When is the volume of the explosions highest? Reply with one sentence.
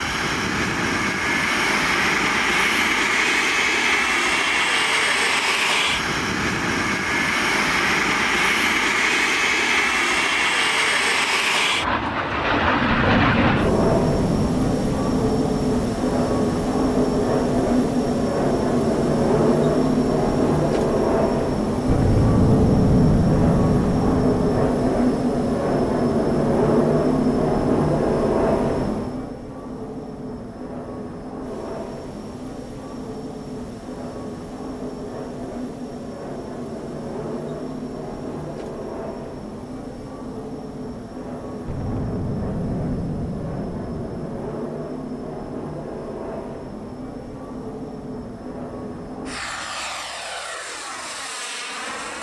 The loudest moment of the explosions is at 23 seconds.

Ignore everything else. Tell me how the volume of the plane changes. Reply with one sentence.
The volume of the plane goes down.